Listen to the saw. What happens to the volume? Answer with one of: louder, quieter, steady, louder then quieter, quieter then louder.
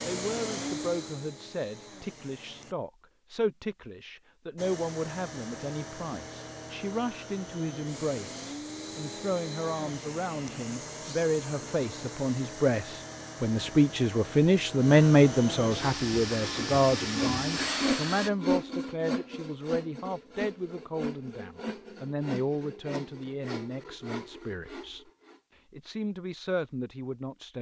quieter.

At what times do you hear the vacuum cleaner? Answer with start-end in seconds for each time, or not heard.
0.0-2.8, 4.5-18.3.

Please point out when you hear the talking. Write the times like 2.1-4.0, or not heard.
0.0-25.1, 25.7-27.5.